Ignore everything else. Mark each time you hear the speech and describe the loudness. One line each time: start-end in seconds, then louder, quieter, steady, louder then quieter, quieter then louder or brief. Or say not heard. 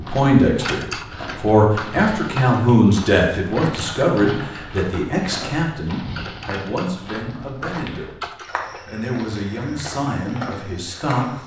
0.0-11.4 quieter.